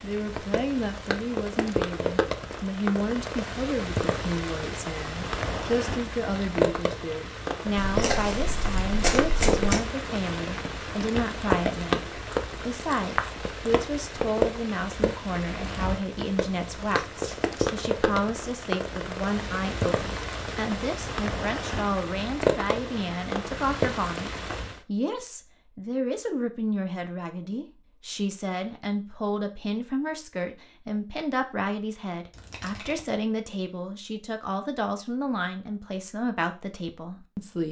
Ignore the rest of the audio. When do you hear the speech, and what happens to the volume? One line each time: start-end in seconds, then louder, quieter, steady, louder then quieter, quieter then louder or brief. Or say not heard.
0.0-37.6 steady.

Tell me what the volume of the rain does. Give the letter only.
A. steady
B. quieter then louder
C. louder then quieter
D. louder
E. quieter
A.